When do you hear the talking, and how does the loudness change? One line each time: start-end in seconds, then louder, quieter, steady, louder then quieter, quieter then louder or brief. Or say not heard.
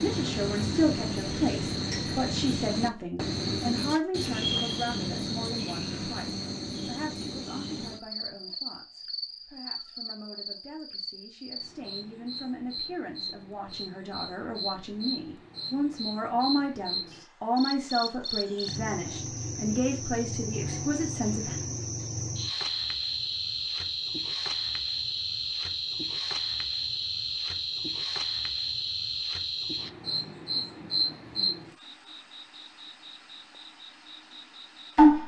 0.0-21.6 quieter then louder.